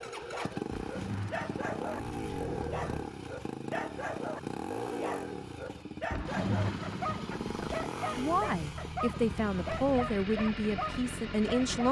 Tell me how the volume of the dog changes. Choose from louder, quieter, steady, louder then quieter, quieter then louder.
steady.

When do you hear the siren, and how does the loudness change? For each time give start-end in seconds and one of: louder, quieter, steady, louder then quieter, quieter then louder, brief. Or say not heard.
not heard.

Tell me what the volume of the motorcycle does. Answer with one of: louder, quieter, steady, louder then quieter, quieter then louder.
steady.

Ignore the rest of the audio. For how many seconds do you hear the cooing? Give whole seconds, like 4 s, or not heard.
4 s.